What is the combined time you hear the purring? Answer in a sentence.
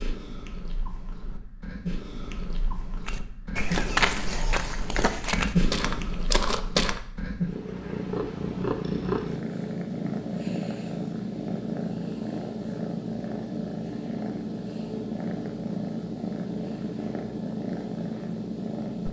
You can hear the purring for 19 seconds altogether.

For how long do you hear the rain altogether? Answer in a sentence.
You can't hear the rain here.